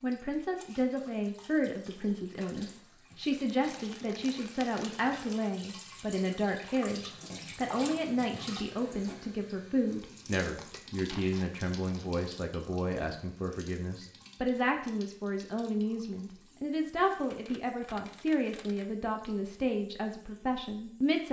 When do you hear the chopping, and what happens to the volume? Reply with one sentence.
The chopping can't be heard in this clip.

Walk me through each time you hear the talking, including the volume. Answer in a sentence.
The talking can be heard from 0.0 to 21.2 s, at a steady volume.